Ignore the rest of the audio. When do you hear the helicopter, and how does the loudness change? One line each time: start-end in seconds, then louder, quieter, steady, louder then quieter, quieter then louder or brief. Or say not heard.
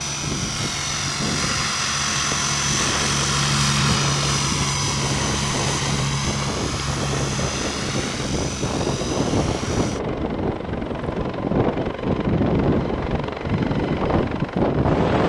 0.0-15.2 quieter.